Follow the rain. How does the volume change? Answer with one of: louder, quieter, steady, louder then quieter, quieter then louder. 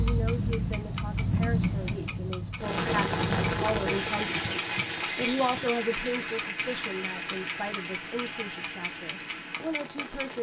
quieter.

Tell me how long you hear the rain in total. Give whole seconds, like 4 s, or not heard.
8 s.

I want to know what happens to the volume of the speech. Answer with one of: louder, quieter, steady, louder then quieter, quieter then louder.
louder then quieter.